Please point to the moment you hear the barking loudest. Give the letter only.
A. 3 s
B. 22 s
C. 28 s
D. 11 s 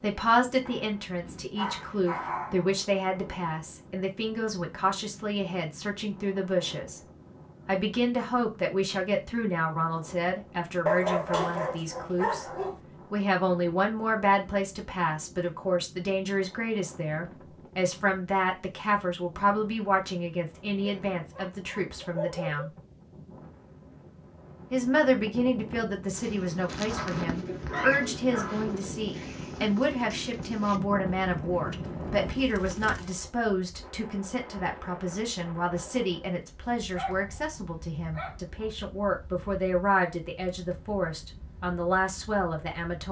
D.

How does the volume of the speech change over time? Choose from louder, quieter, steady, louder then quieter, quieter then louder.
steady.